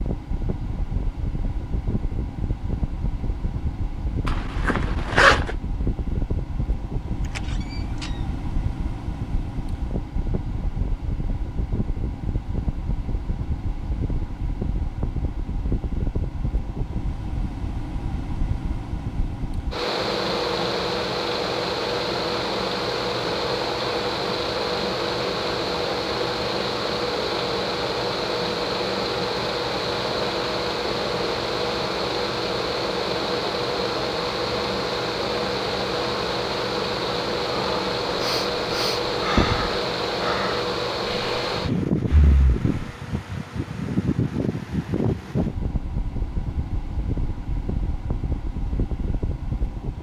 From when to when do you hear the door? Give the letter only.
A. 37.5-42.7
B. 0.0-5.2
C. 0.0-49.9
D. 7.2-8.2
D.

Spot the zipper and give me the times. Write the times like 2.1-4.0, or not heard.
4.2-5.5.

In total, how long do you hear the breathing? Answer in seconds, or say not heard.
5 s.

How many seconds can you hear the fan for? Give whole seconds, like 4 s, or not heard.
50 s.